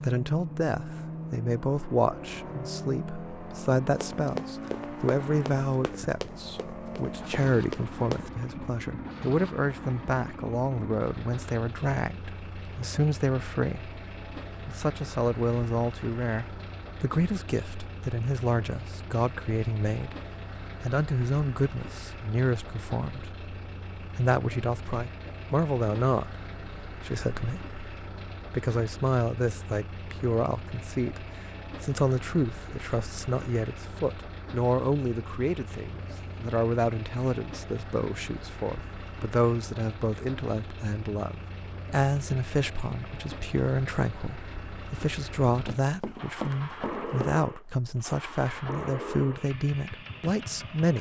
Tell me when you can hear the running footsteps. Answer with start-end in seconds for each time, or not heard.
4.0-8.2, 45.6-47.3.